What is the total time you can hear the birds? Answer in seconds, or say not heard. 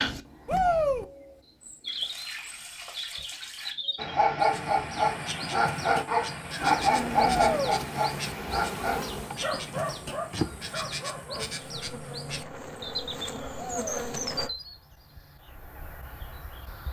17 s.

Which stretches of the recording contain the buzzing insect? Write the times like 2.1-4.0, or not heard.
6.6-14.5.